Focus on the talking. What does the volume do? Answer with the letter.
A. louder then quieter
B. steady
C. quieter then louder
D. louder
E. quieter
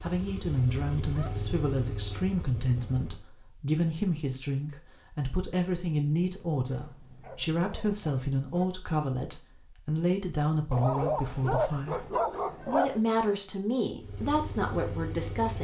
B.